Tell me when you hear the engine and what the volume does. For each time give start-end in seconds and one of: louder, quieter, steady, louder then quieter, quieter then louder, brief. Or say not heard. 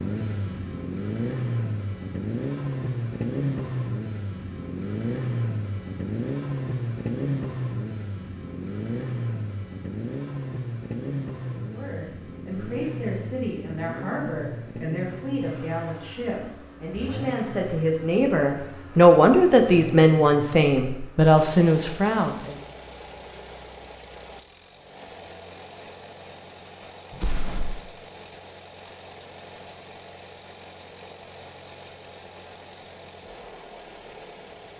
0.0-34.7 quieter.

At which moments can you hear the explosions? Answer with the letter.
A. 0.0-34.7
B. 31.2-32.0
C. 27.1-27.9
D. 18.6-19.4
C.